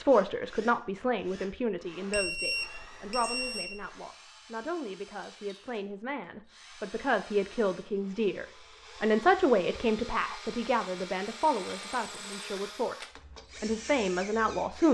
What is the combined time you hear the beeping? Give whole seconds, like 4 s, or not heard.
2 s.